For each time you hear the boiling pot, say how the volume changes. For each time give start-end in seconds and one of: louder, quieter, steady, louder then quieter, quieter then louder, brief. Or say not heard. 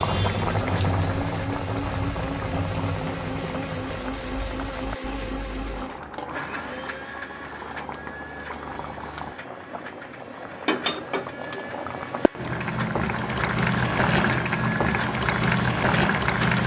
0.0-16.6 quieter then louder.